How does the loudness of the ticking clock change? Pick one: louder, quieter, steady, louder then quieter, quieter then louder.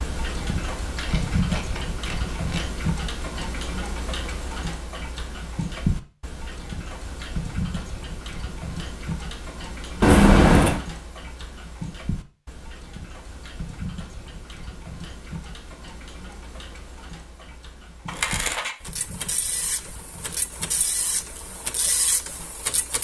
quieter.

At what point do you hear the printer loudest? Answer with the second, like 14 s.
22 s.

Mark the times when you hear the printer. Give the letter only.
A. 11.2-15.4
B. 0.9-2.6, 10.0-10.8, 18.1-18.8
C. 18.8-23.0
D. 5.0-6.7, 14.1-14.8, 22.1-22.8
C.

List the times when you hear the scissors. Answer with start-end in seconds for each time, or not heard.
0.9-2.6, 10.0-10.8, 18.1-18.8.